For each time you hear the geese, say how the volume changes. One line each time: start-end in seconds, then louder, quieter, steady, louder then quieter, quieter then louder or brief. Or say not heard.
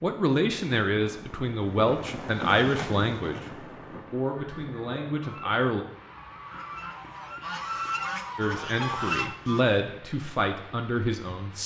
4.3-9.7 louder.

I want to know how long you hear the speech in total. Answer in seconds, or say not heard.
9 s.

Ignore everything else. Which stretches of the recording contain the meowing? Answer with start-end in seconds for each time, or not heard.
not heard.